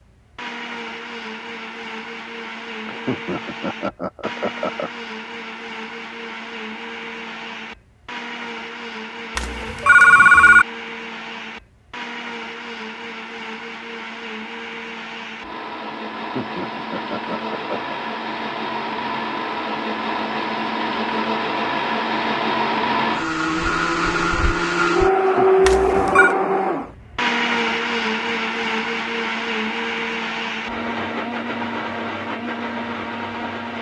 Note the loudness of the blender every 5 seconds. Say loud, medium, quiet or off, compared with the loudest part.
quiet, quiet, quiet, medium, loud, loud, medium.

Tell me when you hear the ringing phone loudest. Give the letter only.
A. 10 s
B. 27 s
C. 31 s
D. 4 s
A.